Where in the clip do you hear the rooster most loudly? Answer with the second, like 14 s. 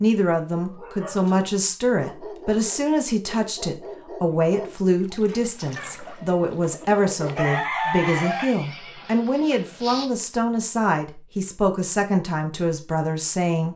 8 s.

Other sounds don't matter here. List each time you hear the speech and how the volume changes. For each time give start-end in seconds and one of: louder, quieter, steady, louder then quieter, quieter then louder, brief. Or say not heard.
0.0-13.7 steady.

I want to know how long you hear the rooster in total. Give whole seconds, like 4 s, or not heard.
3 s.